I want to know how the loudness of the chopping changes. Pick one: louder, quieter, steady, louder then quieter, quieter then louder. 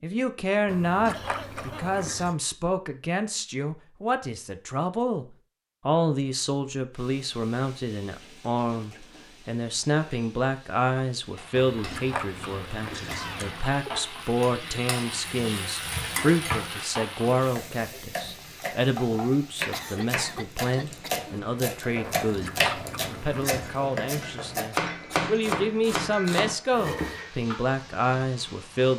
louder.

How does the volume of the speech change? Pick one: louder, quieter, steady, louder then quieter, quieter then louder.
steady.